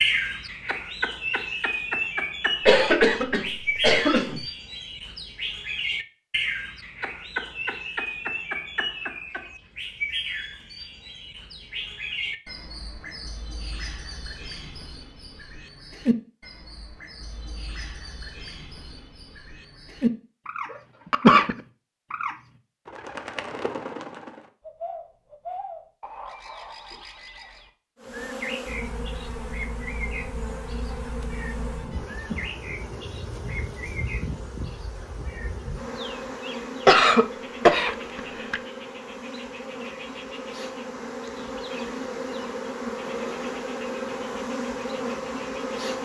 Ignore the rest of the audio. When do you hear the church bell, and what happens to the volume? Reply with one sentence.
You can't hear the church bell here.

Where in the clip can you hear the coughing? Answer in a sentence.
You can hear the coughing from 2.6 to 4.5 s, from 21.1 to 21.6 s and from 36.9 to 38.6 s.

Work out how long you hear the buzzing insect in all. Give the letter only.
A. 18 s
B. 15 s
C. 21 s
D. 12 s
A.